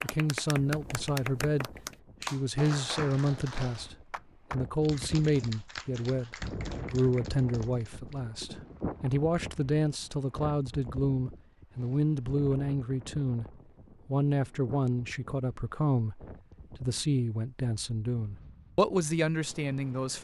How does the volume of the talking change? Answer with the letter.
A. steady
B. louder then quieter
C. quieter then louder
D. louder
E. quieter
A.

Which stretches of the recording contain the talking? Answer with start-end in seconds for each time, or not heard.
0.0-13.4, 14.1-20.1.